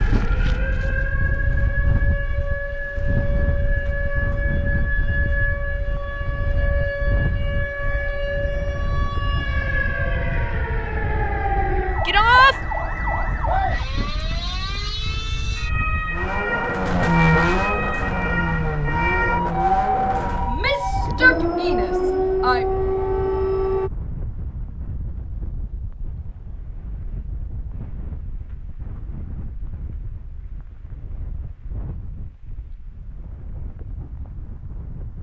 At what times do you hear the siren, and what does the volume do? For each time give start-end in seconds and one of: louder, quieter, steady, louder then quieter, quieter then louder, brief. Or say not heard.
0.0-23.9 louder.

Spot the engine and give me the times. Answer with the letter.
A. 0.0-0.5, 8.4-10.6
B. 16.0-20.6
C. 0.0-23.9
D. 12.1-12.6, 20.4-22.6
B.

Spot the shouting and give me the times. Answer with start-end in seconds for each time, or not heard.
12.1-12.6, 20.4-22.6.